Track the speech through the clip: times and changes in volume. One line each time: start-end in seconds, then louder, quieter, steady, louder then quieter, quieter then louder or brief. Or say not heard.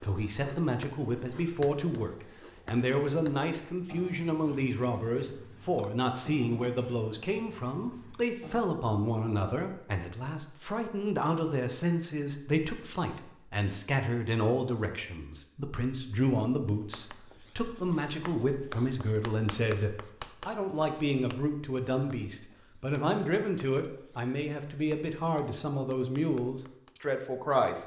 0.0-27.8 steady.